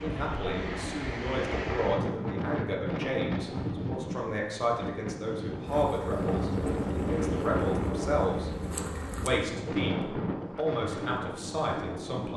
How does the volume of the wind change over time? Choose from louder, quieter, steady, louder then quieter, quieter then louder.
steady.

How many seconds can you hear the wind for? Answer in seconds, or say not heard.
12 s.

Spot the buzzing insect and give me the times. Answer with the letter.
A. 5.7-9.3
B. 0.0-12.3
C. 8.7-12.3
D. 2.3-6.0
A.